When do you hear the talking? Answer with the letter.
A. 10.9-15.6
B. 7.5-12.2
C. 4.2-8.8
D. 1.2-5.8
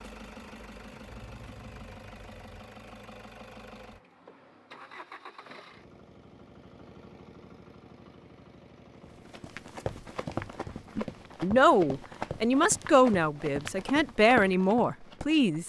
A.